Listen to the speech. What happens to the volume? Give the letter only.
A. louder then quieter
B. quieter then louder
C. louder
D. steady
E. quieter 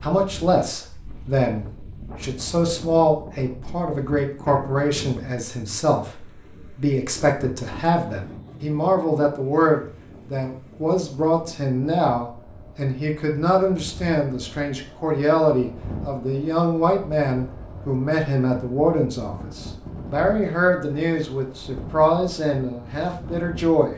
D.